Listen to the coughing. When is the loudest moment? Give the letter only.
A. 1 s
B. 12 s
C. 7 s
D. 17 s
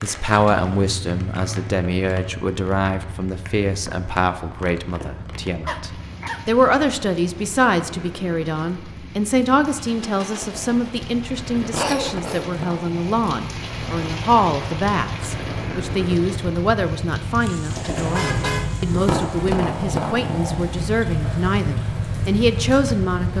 B.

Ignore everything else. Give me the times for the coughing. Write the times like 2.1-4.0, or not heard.
5.7-6.4, 11.8-12.5.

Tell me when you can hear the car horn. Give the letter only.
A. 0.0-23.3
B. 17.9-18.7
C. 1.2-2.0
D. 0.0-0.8
B.